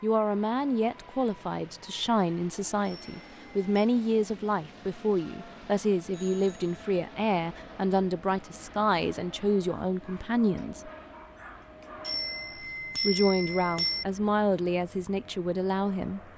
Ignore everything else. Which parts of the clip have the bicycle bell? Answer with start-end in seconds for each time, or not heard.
2.8-3.7, 6.0-6.7, 12.0-14.1.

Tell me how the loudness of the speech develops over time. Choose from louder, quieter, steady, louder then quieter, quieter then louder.
steady.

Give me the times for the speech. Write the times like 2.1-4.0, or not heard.
0.0-10.9, 13.0-16.2.